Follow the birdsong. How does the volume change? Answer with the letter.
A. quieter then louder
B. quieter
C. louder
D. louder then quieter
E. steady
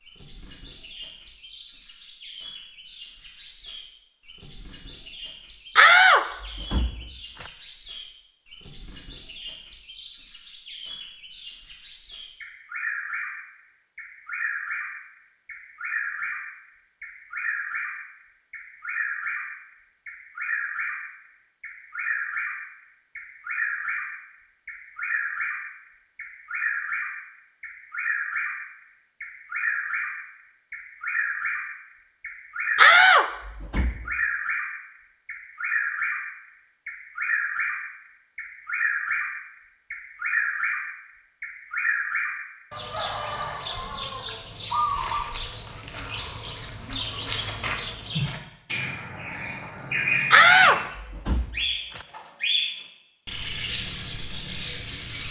C.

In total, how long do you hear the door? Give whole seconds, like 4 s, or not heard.
5 s.